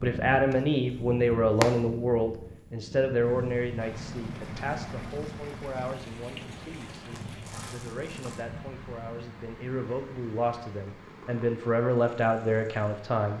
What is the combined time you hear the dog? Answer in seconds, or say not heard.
not heard.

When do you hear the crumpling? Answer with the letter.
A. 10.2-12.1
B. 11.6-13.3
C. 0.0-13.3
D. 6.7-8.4
D.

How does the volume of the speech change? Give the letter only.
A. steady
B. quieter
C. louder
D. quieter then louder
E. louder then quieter
D.